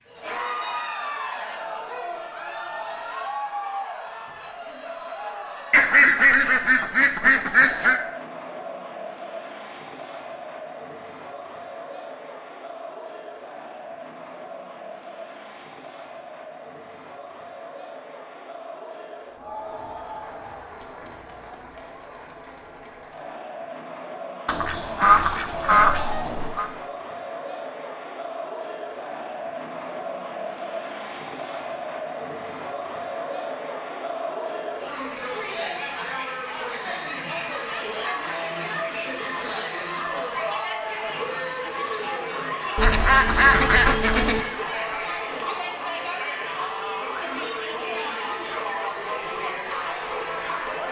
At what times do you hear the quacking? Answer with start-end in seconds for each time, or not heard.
5.7-8.0, 24.4-26.7, 42.8-44.4.